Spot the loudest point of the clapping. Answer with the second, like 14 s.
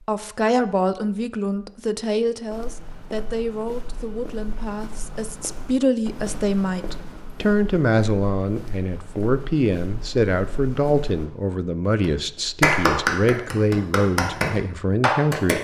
13 s.